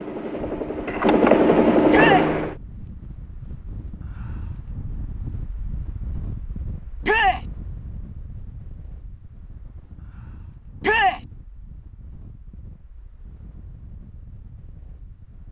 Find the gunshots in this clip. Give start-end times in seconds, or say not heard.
not heard.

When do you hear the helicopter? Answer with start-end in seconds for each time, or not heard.
0.0-2.5.